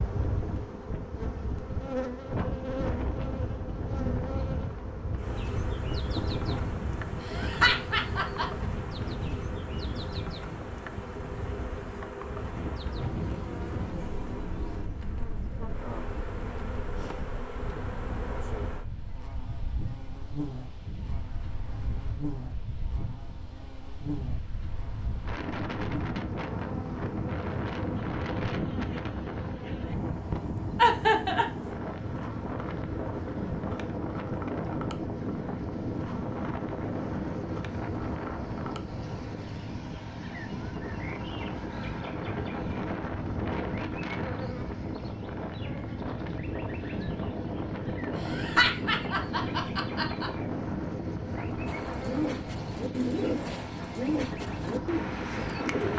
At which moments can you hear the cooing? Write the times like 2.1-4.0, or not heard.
51.6-55.9.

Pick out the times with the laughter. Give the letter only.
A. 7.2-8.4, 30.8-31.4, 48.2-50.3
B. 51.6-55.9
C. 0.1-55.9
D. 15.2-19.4
A.